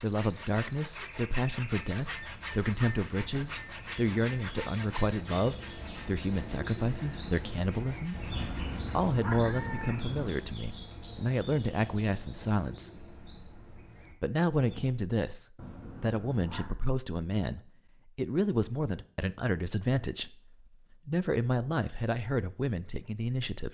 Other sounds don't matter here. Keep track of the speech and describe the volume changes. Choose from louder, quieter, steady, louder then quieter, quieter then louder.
steady.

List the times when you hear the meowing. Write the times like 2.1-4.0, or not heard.
8.3-10.3, 15.6-16.8.